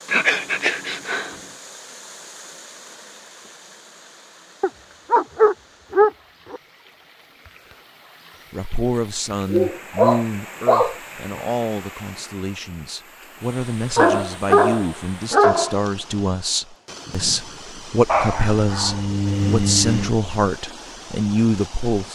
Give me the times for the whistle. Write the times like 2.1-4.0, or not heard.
not heard.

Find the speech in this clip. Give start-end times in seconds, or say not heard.
8.5-22.0.